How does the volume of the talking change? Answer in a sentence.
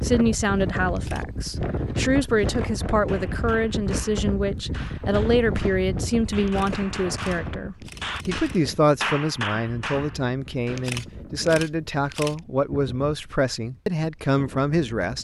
The loudness of the talking stays about the same.